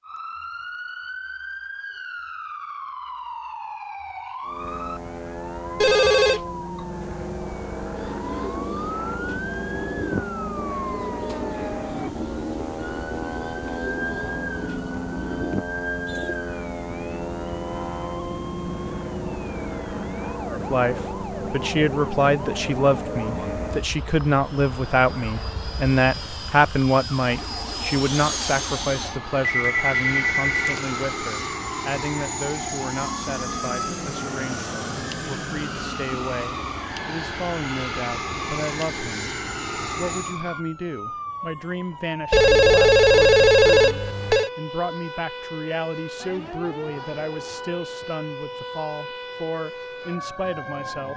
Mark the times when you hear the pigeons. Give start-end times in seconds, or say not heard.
8.0-16.4.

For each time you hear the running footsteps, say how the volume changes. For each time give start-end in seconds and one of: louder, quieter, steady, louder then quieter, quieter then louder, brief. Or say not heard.
not heard.